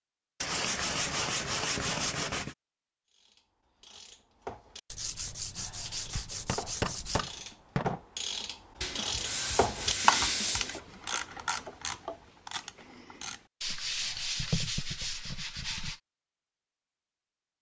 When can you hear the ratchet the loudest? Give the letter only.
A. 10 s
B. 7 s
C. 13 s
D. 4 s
A.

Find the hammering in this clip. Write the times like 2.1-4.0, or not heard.
6.5-8.0.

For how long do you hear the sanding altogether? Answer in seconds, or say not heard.
9 s.